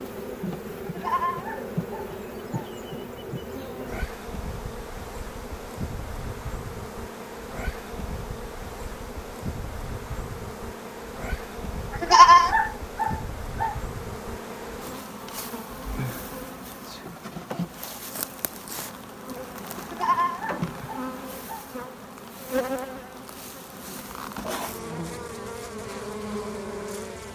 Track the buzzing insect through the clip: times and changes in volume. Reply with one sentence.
You can hear the buzzing insect from 0.0 to 27.3 s, at a steady volume.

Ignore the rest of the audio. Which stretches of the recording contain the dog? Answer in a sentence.
The dog can't be heard in this clip.